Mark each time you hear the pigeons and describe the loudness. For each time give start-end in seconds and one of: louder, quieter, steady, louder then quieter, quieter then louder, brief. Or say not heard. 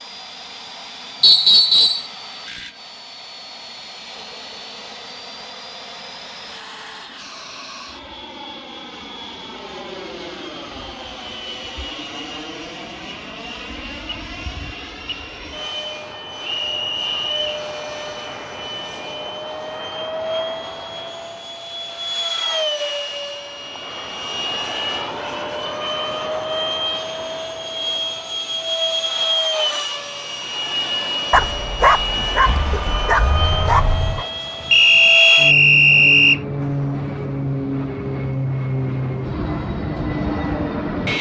not heard.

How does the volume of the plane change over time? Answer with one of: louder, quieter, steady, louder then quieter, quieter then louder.
louder.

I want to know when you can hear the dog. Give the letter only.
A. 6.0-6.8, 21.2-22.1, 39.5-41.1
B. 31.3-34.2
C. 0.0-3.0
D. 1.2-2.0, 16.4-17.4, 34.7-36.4
B.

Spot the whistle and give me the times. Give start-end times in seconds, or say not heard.
1.2-2.0, 16.4-17.4, 34.7-36.4.